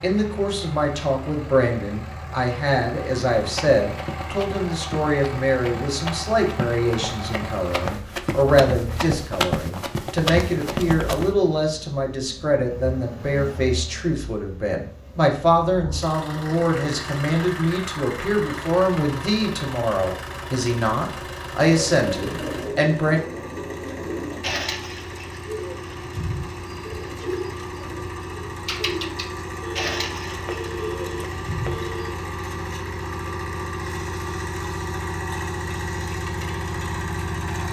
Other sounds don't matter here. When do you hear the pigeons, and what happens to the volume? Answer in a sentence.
You can hear the pigeons from 21.6 to 31.9 s, at a steady volume.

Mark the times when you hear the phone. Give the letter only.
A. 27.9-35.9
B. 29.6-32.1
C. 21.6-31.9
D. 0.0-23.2
B.